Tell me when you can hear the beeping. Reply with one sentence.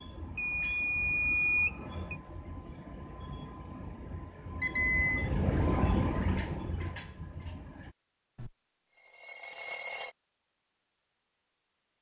The beeping can be heard from 0.3 to 2.1 s, from 4.6 to 5.3 s and from 8.8 to 10.1 s.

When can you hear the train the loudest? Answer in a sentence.
The loudest moment of the train is at 6 seconds.